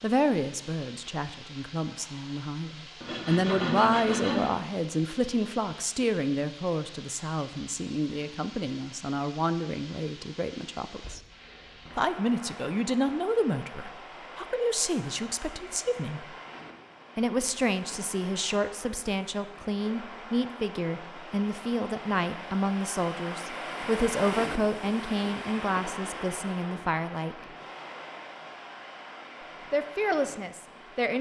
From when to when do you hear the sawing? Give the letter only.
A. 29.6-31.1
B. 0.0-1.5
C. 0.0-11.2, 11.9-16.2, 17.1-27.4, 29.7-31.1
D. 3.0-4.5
D.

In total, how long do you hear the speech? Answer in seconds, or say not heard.
27 s.